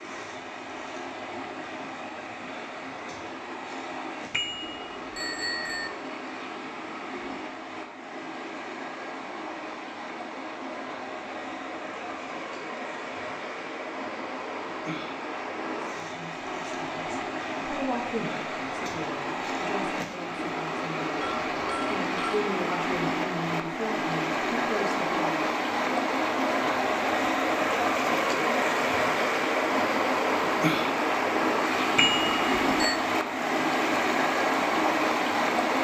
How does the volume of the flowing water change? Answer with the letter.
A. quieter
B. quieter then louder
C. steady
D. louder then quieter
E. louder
E.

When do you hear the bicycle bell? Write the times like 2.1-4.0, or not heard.
4.3-5.9, 21.2-22.4, 31.9-33.0.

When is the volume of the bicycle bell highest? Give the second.
32 s.